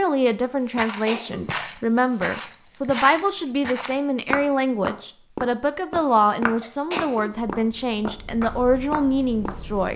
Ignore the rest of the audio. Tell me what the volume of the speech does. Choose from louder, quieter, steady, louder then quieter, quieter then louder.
steady.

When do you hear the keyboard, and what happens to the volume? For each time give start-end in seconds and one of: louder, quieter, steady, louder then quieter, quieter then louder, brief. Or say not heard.
not heard.